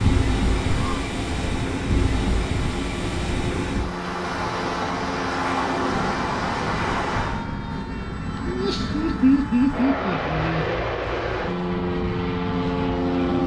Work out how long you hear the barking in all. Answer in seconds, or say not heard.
not heard.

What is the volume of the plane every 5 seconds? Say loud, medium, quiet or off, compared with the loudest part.
medium, medium, loud.